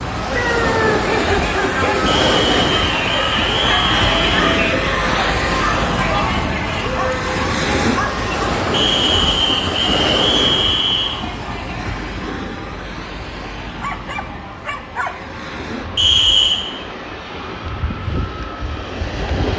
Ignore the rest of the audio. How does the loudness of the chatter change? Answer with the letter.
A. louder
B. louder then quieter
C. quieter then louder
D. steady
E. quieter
E.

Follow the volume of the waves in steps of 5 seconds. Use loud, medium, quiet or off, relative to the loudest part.
loud, loud, medium, medium.